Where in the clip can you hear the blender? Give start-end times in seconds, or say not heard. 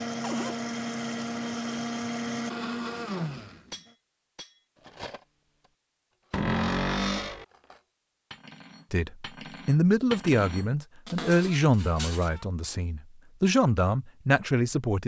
0.0-3.9.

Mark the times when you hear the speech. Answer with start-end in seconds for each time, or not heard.
8.9-15.0.